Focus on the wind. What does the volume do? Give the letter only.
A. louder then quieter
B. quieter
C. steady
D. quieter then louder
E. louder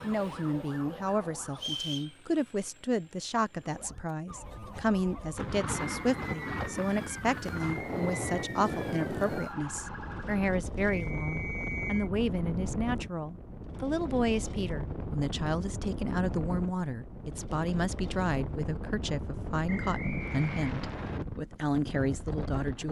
C.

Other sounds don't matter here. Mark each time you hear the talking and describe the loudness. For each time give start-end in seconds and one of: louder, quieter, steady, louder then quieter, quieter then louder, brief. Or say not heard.
0.0-22.8 steady.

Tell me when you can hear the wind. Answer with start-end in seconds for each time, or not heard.
5.3-22.8.